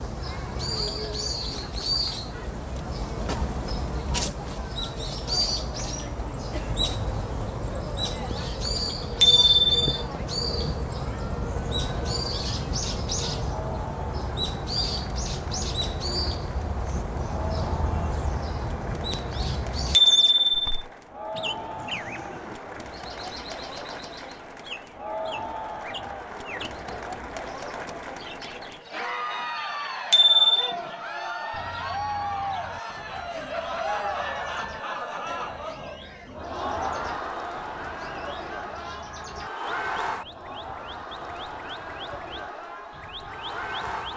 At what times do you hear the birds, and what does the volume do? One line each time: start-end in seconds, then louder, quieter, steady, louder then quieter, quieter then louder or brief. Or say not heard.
0.0-44.1 quieter.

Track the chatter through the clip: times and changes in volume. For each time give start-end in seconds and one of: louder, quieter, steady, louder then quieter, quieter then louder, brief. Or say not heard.
0.1-44.1 louder.